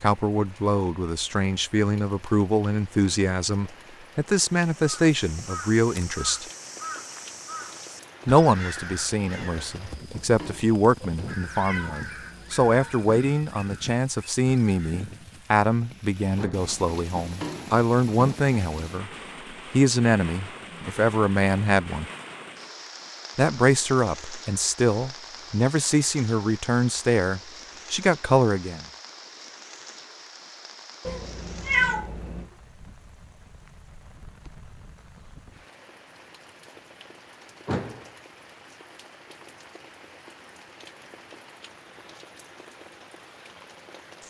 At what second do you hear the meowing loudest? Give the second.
32 s.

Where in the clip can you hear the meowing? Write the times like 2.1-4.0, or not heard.
11.0-12.9, 31.1-32.5.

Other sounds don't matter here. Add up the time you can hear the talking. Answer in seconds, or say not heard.
25 s.